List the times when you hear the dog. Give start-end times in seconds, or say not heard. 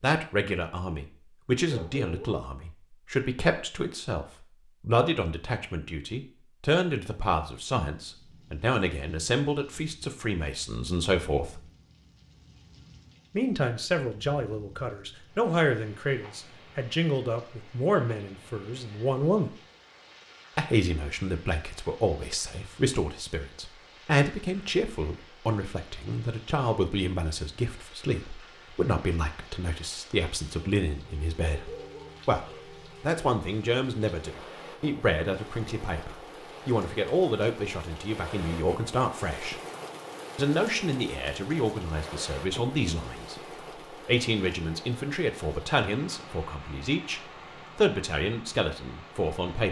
1.6-2.5, 31.4-32.2.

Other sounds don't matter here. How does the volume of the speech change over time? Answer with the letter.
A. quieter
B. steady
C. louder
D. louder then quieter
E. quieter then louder
B.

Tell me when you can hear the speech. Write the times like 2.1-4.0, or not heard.
0.0-11.6, 13.3-19.6, 20.6-39.6, 40.4-49.6.